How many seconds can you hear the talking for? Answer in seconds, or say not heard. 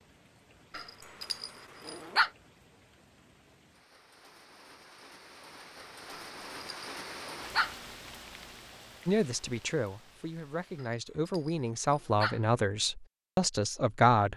5 s.